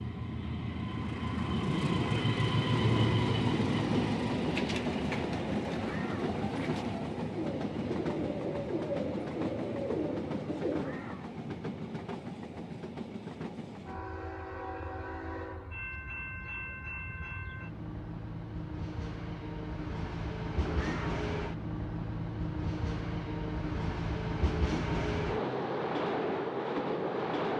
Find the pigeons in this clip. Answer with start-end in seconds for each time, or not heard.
4.3-11.2.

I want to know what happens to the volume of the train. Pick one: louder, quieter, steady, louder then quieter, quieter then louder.
quieter then louder.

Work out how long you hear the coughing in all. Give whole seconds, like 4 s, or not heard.
2 s.